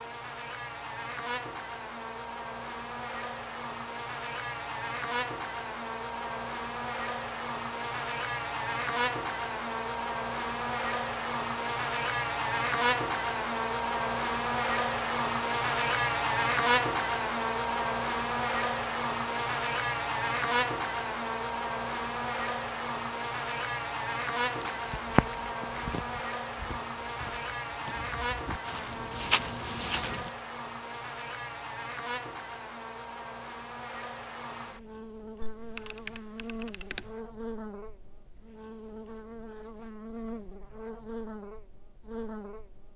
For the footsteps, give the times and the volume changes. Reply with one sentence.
You can hear the footsteps from 24.4 to 30.3 s, getting quieter then louder.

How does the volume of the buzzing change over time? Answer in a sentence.
The loudness of the buzzing goes up, then down.